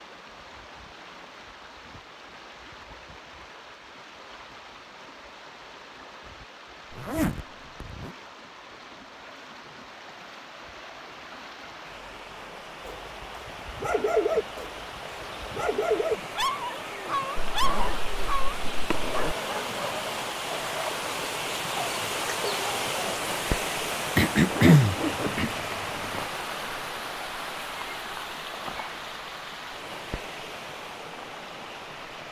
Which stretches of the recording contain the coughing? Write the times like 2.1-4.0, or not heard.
24.1-25.5.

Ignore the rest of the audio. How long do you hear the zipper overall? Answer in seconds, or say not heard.
5 s.